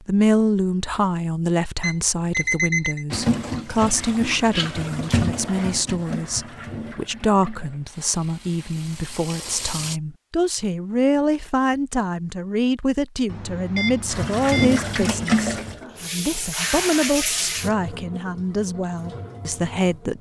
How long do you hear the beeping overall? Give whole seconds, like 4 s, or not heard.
3 s.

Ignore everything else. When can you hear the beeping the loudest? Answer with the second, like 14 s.
3 s.